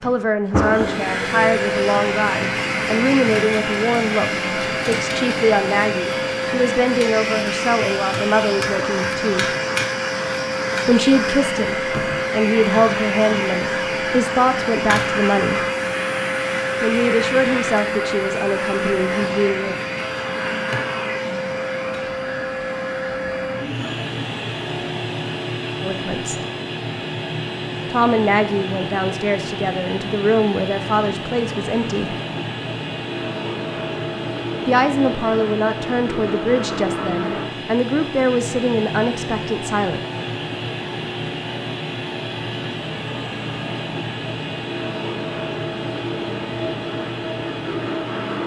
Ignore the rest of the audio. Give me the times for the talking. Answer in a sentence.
The talking can be heard from 0.0 to 9.4 s, from 10.8 to 15.6 s, from 16.8 to 19.8 s, from 25.8 to 26.4 s, from 27.9 to 32.2 s and from 34.6 to 40.0 s.